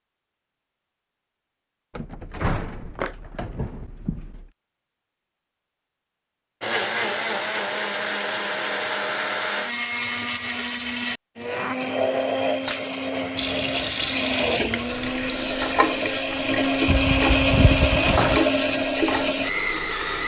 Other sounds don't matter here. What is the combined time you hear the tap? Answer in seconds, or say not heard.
7 s.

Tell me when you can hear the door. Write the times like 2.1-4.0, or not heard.
1.9-4.5, 16.9-18.4.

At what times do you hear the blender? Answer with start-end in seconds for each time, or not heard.
6.6-20.2.